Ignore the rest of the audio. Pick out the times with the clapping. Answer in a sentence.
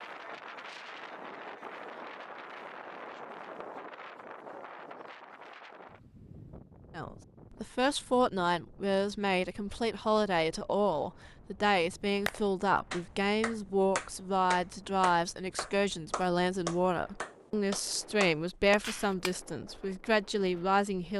You can hear the clapping from 11.8 to 19.4 s.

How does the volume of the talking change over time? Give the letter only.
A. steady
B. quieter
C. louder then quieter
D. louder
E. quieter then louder
A.